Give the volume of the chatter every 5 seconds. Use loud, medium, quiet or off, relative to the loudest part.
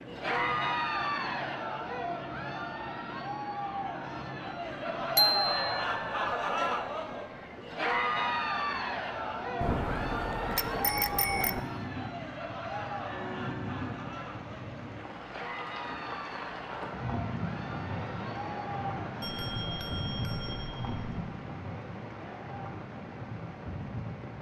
loud, loud, medium, medium, off.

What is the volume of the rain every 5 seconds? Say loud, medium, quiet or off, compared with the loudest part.
medium, medium, loud, loud, loud.